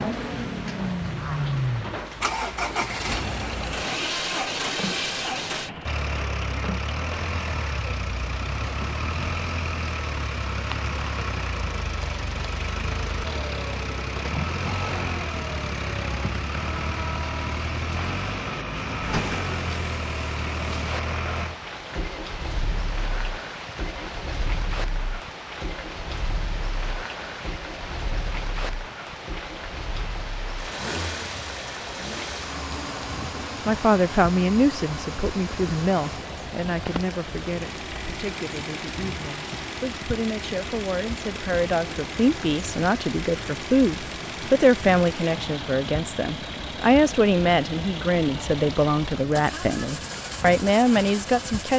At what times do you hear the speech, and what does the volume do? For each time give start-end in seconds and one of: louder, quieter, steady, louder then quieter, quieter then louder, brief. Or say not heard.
33.6-51.7 quieter then louder.